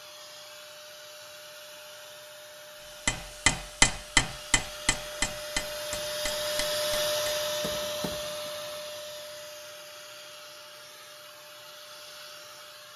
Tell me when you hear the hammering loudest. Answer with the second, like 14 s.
4 s.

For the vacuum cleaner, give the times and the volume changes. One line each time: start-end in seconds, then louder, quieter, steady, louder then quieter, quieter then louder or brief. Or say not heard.
0.0-12.9 louder then quieter.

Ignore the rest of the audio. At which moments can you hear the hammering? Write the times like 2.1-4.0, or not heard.
3.0-8.5.